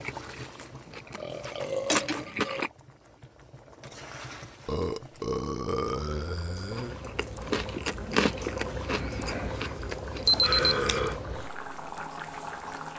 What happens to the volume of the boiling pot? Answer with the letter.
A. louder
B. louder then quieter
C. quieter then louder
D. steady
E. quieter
C.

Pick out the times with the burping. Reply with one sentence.
The burping can be heard from 1.1 to 2.6 s, from 4.7 to 7.0 s and from 10.4 to 11.2 s.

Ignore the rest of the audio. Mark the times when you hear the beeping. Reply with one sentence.
You can hear the beeping from 10.2 to 11.0 s.